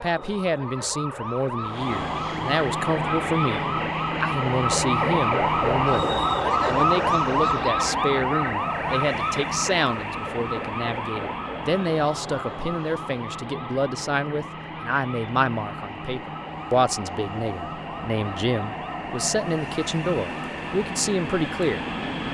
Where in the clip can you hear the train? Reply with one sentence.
You can hear the train from 1.6 to 22.2 s.